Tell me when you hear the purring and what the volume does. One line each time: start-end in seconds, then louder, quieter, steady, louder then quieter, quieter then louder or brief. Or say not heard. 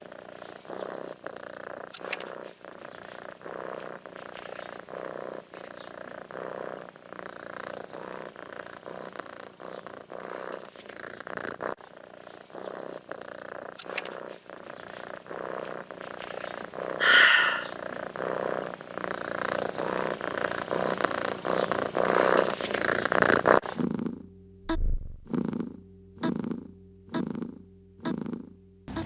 0.0-29.0 louder.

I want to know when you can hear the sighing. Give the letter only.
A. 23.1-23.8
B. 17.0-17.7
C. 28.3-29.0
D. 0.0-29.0
B.